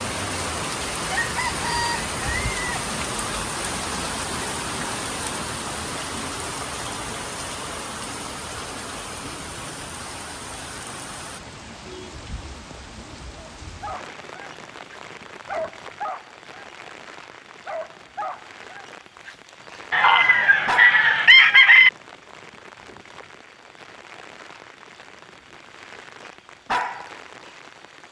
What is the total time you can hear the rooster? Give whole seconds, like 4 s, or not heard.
4 s.